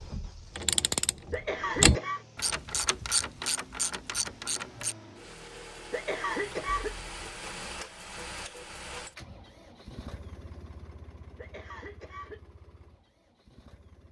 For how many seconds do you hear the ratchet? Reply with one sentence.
You can hear the ratchet for 5 seconds altogether.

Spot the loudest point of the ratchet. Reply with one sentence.
The volume of the ratchet peaks at 2 seconds.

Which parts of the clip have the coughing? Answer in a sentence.
You can hear the coughing from 1.3 to 2.2 s, from 5.9 to 7.0 s and from 11.3 to 12.4 s.